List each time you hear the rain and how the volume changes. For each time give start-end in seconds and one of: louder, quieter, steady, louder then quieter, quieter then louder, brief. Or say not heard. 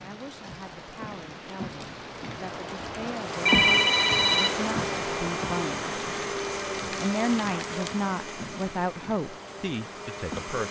0.0-10.6 louder then quieter.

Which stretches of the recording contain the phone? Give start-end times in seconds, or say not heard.
3.5-4.6.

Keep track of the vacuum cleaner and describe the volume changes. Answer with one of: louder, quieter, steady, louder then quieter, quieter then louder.
quieter.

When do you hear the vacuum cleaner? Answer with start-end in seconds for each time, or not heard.
3.1-10.6.